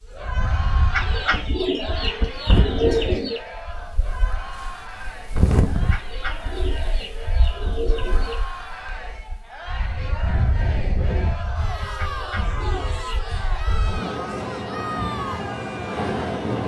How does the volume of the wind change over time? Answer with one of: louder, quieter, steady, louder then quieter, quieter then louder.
quieter then louder.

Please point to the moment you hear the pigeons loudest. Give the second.
3 s.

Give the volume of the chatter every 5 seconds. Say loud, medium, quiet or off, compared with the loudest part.
loud, medium, loud, loud.